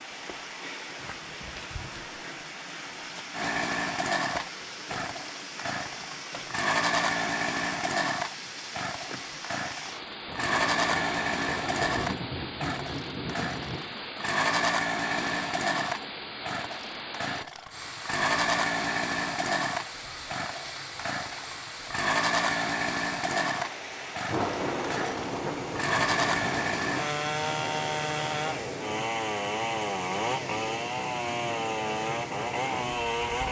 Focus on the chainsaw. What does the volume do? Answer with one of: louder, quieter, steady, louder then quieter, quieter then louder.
steady.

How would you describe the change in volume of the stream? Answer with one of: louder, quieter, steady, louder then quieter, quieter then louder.
steady.